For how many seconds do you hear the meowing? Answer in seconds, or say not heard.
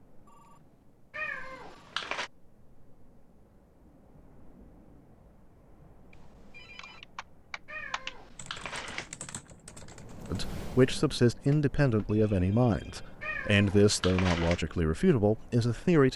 4 s.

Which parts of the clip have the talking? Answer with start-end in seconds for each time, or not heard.
10.3-16.1.